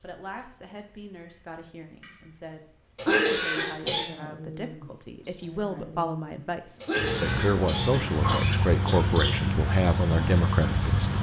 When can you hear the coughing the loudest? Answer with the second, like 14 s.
3 s.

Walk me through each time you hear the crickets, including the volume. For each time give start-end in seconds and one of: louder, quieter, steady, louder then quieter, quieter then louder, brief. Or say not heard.
0.0-11.1 louder.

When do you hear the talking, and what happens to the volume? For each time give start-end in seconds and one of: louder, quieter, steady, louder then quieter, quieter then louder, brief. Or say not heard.
0.0-11.1 louder.